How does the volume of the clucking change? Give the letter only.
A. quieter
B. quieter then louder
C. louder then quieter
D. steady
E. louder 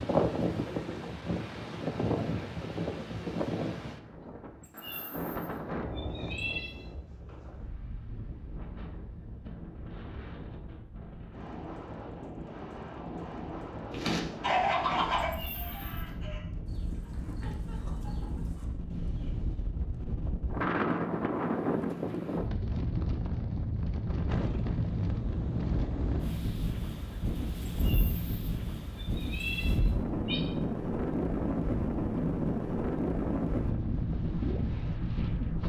A.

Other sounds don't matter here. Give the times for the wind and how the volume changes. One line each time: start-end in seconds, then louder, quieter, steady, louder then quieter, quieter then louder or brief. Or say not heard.
0.0-35.6 quieter then louder.